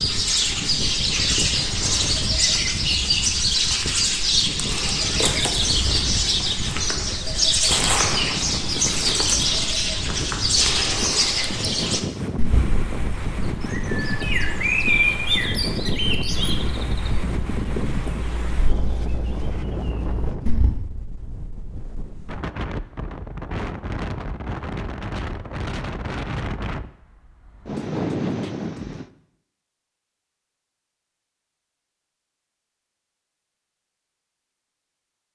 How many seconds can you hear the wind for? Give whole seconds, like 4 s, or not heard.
29 s.